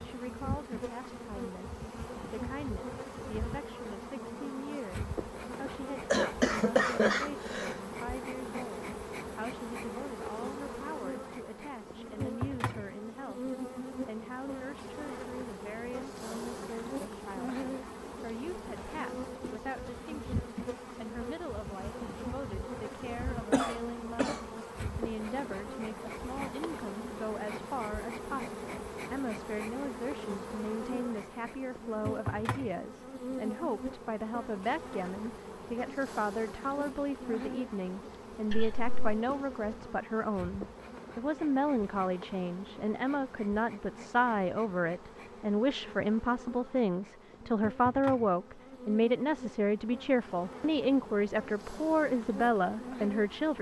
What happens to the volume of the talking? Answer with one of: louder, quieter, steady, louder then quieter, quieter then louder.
louder.